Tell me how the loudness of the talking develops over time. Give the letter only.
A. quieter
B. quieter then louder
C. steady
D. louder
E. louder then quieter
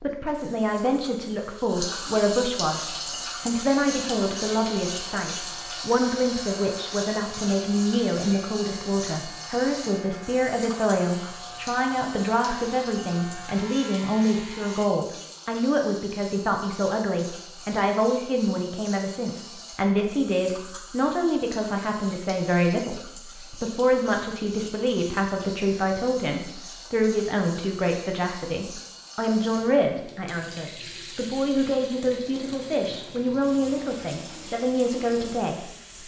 C.